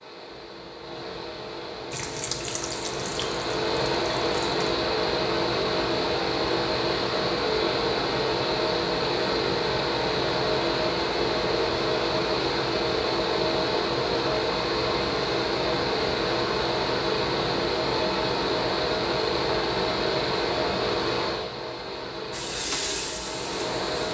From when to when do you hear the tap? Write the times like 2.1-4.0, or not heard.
1.9-4.7, 22.3-24.1.